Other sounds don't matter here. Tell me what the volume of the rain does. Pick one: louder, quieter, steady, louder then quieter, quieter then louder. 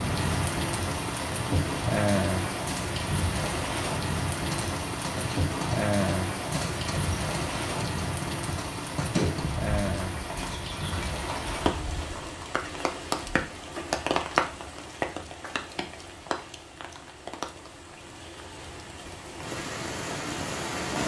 quieter.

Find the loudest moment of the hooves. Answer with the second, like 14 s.
9 s.